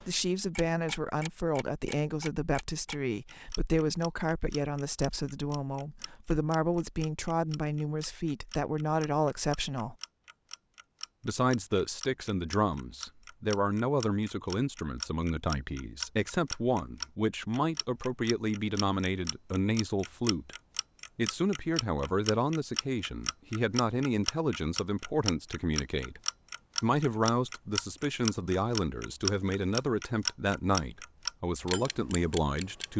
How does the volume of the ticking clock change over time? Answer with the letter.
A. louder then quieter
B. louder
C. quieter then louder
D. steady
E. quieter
B.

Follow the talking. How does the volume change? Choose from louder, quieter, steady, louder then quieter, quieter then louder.
steady.